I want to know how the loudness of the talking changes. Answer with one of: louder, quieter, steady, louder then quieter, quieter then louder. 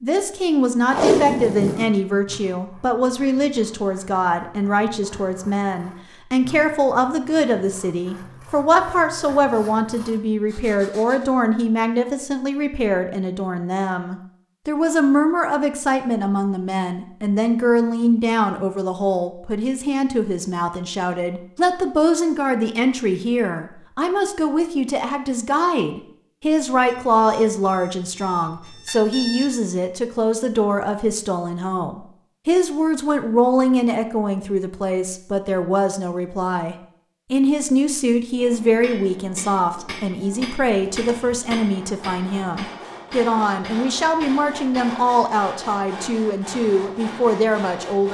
steady.